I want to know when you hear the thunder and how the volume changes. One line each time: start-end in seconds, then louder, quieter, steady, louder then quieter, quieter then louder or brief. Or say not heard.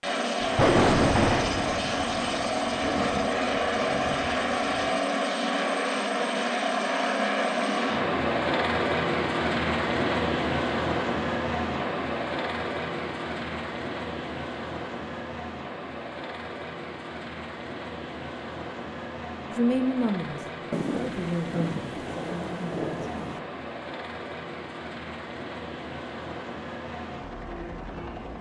0.4-5.0 quieter
20.7-23.4 brief.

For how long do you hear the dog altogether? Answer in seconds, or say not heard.
not heard.